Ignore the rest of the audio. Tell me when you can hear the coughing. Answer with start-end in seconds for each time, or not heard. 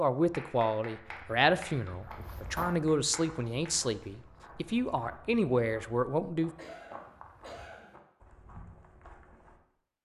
6.5-8.0.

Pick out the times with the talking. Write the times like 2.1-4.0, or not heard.
0.0-6.5.